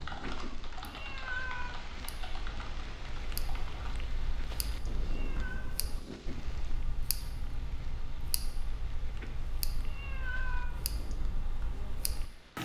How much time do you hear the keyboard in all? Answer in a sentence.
You can hear the keyboard for 4 seconds altogether.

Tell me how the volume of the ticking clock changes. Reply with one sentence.
The loudness of the ticking clock goes up.